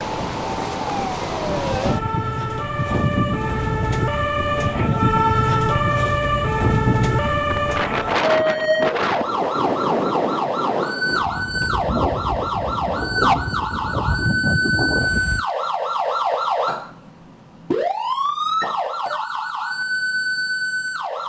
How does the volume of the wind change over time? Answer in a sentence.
The loudness of the wind stays about the same.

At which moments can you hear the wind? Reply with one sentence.
The wind can be heard from 0.0 to 15.4 s.